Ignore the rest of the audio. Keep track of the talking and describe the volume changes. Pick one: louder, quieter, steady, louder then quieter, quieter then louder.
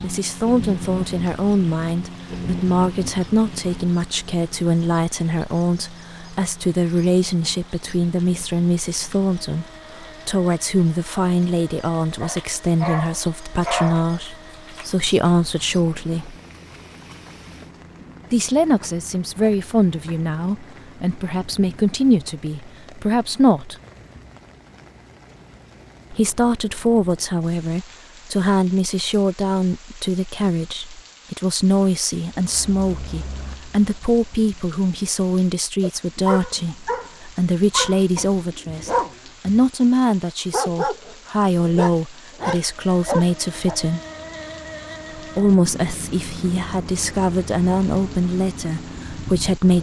steady.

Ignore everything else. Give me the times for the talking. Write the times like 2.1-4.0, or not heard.
0.0-16.4, 18.3-23.8, 26.1-44.0, 45.1-49.7.